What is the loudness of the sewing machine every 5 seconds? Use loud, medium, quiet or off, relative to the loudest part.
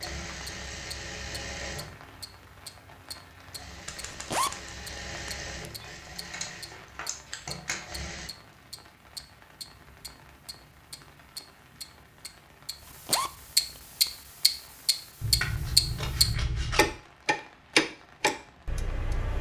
loud, loud, off, off.